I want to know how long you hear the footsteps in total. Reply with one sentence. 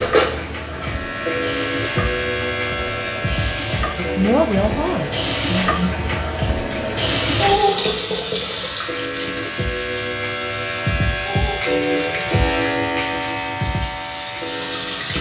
You can't hear the footsteps here.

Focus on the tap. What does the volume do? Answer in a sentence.
The volume of the tap goes up, then down.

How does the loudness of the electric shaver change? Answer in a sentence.
The loudness of the electric shaver goes down, then up.